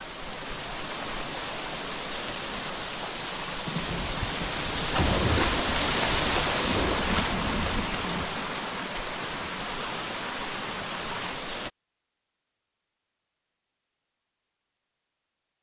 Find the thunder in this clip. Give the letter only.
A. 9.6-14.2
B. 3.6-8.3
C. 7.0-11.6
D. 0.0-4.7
B.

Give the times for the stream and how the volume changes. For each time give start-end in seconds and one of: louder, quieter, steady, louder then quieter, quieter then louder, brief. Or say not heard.
0.0-11.7 louder then quieter.